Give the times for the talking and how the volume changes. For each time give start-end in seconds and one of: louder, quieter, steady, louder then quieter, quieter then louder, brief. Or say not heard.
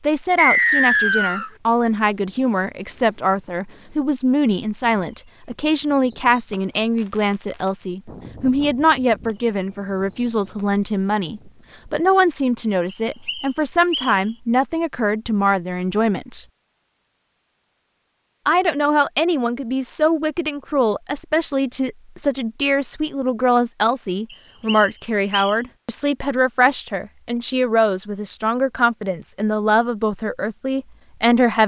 0.0-16.4 steady
18.4-31.6 steady.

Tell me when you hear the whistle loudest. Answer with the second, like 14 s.
1 s.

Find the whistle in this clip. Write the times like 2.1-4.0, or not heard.
0.3-1.5, 12.9-14.2, 24.3-25.6.